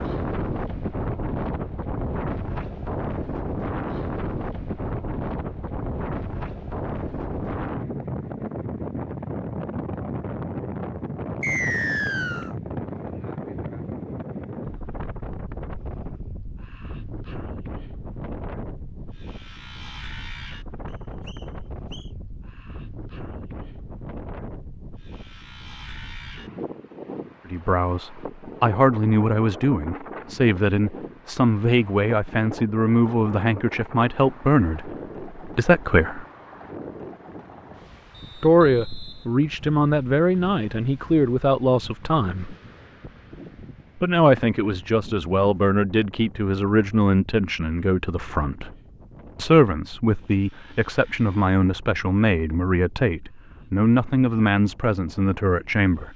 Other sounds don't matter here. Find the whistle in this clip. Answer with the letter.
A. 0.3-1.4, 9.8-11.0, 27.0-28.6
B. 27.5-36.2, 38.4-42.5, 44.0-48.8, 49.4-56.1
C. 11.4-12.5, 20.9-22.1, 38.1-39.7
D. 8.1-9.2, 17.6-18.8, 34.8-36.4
C.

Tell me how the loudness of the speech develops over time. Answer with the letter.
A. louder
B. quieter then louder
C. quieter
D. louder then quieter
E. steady
E.